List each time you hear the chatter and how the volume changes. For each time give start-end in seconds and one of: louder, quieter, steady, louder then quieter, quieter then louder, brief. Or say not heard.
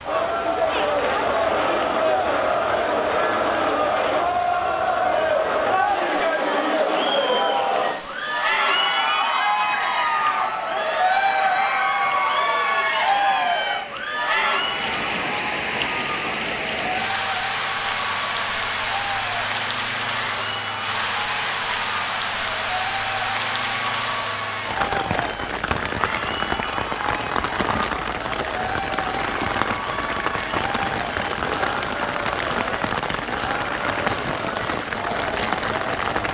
0.0-36.2 quieter.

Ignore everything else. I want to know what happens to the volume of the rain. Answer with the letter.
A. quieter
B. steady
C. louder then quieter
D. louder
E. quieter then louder
D.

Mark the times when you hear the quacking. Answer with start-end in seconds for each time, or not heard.
not heard.